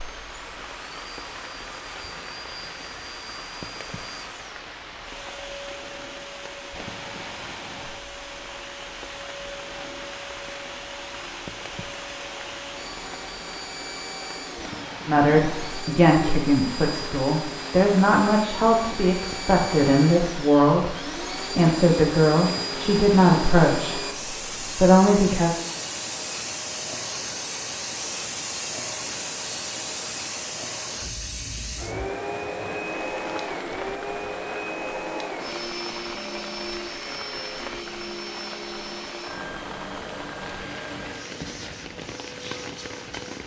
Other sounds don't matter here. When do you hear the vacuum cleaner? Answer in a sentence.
You can hear the vacuum cleaner from 0.0 to 43.4 s.